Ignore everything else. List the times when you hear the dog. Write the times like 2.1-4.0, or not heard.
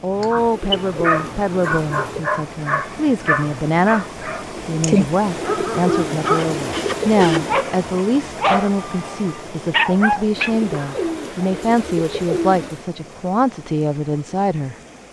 0.1-11.0.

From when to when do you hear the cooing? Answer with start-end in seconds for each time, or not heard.
0.3-2.2, 5.2-7.7, 10.3-12.8.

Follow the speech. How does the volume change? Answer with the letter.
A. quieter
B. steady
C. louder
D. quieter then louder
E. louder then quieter
B.